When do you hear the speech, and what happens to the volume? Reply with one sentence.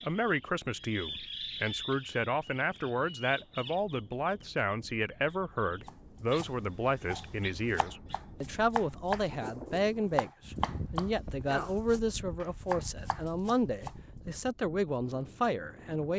You can hear the speech from 0.0 to 16.1 s, at a steady volume.